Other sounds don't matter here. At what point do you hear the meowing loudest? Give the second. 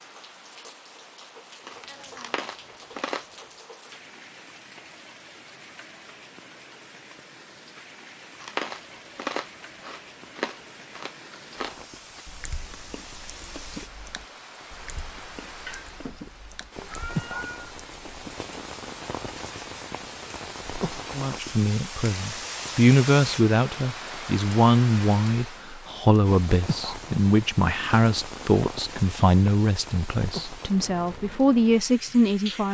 17 s.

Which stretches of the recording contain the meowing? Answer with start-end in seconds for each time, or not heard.
15.7-17.8.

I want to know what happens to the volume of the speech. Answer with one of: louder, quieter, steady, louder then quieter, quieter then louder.
steady.